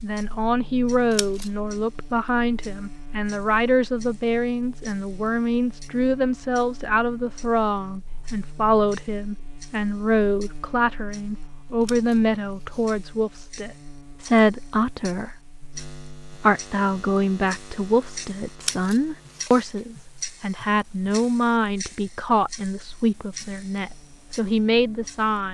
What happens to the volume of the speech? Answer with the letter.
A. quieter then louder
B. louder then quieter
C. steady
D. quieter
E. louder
C.